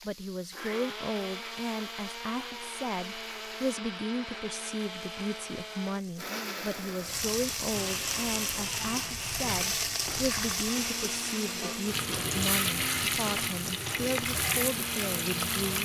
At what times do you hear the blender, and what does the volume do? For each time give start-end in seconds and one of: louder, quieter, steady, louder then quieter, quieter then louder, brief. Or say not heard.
0.0-15.8 steady.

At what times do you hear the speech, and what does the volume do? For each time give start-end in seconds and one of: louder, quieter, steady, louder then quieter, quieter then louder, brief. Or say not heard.
0.0-15.8 steady.